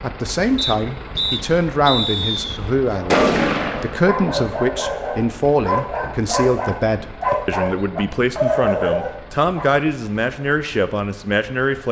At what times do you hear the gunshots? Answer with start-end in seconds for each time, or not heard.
2.5-4.2.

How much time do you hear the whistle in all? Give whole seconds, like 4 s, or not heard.
3 s.